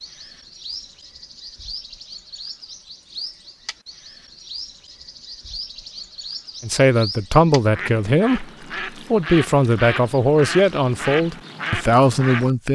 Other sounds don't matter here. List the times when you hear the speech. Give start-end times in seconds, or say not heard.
6.6-8.4, 9.1-12.7.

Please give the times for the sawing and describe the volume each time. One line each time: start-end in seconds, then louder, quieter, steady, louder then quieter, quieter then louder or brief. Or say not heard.
not heard.